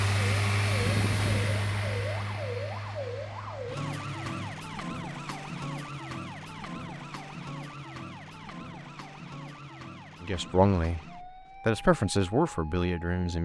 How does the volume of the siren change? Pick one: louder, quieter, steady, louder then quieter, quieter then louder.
quieter.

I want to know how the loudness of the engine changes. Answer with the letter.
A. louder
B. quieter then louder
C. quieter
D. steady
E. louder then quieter
C.